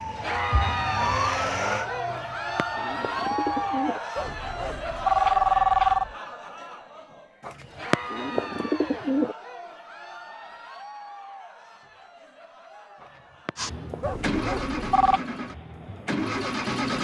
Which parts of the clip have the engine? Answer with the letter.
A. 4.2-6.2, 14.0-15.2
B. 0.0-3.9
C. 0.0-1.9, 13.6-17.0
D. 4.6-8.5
C.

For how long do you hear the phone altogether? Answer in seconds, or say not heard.
3 s.